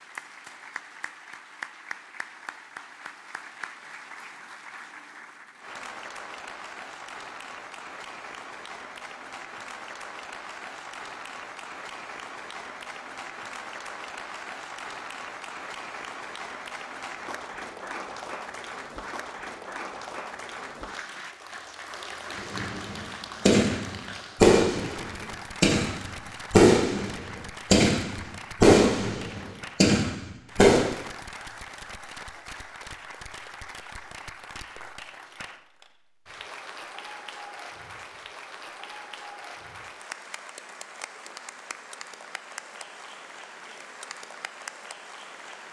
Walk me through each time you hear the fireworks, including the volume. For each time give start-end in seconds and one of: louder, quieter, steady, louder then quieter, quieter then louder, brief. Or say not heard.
22.3-30.9 louder then quieter.